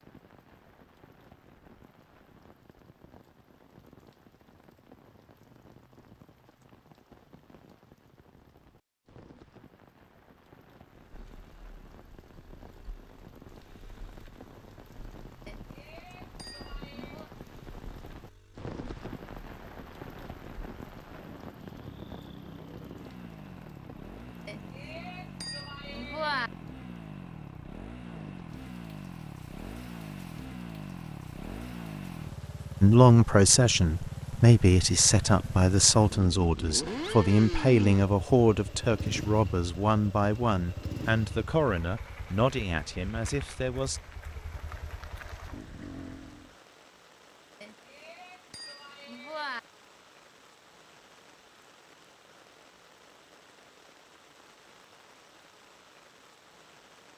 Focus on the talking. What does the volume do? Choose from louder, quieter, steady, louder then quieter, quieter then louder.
quieter.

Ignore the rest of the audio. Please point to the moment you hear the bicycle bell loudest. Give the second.
26 s.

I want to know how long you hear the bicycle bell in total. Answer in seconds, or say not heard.
6 s.